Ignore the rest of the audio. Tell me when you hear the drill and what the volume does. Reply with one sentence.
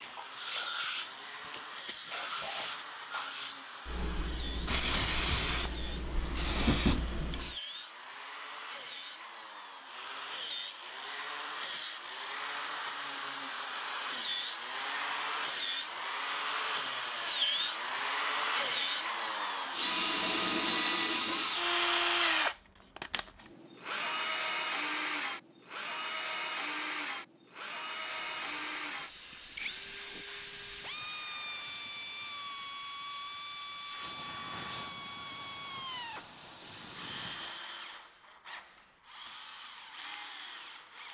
The drill can be heard from 0.0 to 41.1 s, getting louder then quieter.